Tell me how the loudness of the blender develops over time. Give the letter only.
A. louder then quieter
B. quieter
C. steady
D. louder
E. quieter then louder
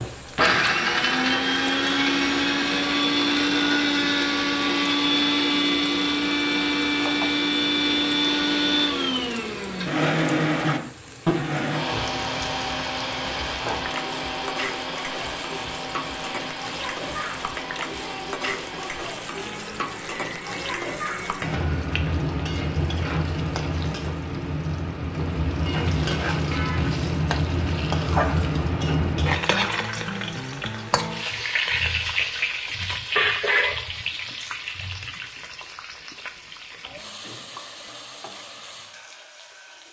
B.